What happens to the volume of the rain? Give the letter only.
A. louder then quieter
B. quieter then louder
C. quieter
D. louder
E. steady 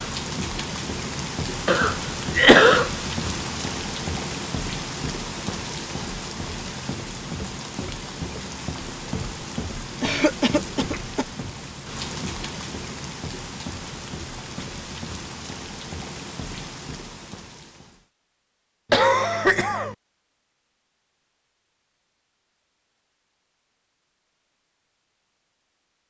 C.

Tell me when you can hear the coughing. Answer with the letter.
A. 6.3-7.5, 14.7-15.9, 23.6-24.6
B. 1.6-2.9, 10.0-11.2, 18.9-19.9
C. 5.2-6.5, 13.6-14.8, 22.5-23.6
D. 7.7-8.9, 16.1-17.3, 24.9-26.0
B.